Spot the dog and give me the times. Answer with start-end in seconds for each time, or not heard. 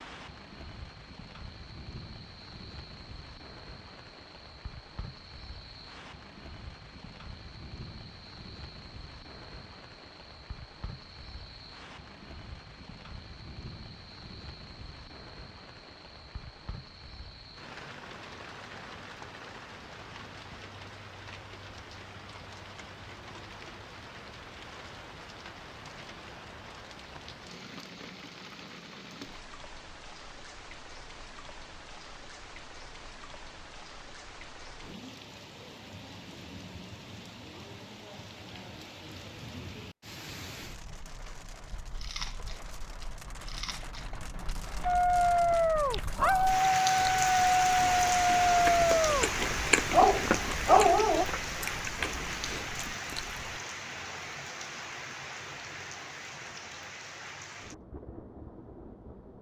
44.9-51.2.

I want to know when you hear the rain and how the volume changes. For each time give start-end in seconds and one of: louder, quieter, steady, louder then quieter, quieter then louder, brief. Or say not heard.
0.0-59.3 louder.